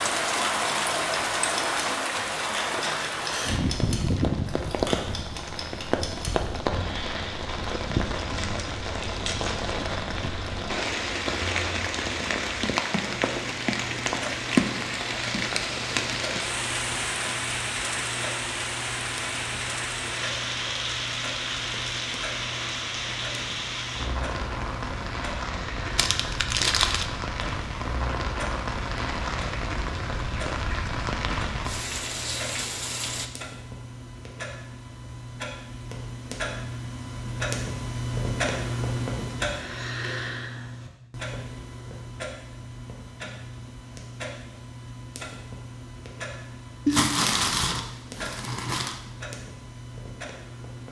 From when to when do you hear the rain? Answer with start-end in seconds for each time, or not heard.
0.0-33.3.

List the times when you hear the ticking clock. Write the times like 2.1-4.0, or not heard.
0.1-50.8.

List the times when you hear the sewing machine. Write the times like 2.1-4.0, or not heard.
not heard.